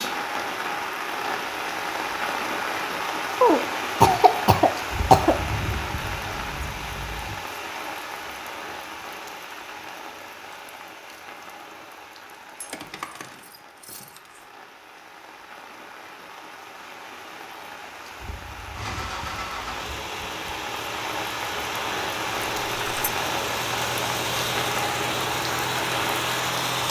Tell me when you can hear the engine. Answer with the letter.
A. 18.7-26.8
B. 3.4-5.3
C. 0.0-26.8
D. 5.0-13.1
A.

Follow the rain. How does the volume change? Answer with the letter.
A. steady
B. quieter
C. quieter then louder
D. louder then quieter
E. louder
C.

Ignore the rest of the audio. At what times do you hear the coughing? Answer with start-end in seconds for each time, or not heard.
3.4-5.3.